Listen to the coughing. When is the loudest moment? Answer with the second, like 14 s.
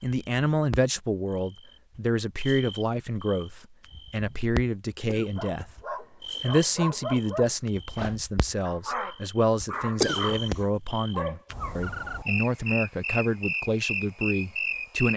10 s.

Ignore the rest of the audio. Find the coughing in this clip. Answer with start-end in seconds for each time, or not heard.
5.0-5.8, 10.0-10.7.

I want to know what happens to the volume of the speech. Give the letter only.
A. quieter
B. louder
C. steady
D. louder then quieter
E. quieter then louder
C.